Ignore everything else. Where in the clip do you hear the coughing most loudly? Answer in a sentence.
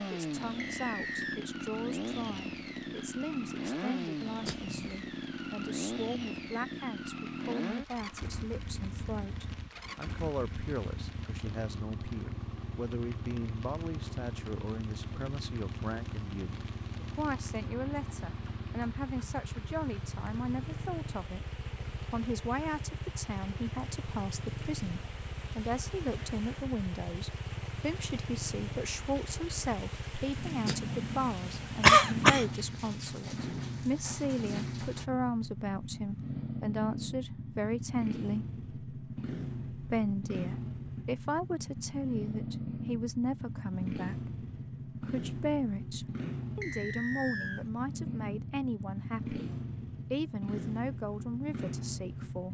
The loudest moment of the coughing is at 32 seconds.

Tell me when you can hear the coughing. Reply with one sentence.
You can hear the coughing from 4.4 to 5.0 s and from 30.6 to 32.5 s.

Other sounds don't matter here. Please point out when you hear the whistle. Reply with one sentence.
The whistle can be heard from 0.6 to 1.4 s and from 46.6 to 47.6 s.